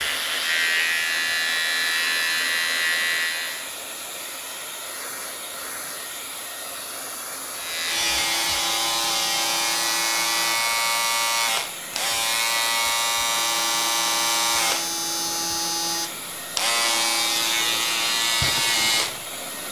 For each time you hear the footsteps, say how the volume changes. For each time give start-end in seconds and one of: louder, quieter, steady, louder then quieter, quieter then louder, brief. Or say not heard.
not heard.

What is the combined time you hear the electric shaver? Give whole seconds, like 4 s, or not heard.
16 s.